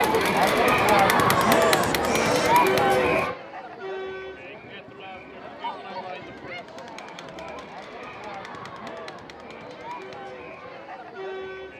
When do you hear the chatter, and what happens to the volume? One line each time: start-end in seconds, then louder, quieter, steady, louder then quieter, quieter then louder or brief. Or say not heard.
0.0-11.7 quieter.